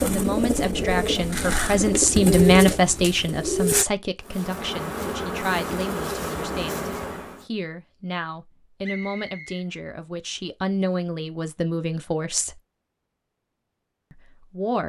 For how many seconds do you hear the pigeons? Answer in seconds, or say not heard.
4 s.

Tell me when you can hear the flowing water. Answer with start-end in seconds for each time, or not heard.
not heard.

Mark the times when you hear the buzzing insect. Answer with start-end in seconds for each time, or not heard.
4.2-7.5.